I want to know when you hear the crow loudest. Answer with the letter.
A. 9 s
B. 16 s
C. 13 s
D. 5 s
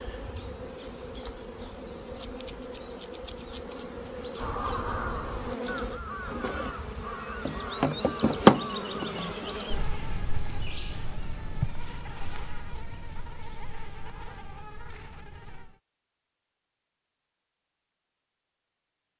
D.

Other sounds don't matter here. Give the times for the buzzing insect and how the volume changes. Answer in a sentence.
The buzzing insect can be heard from 0.0 to 15.8 s, getting louder then quieter.